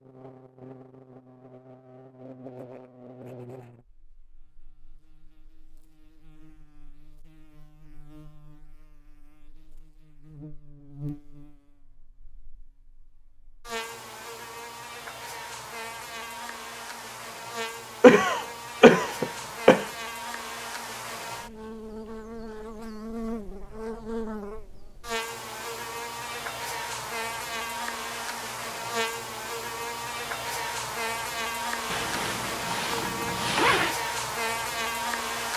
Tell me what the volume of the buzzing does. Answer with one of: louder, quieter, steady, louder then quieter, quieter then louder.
louder.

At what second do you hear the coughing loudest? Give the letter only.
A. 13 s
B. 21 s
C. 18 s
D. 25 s
C.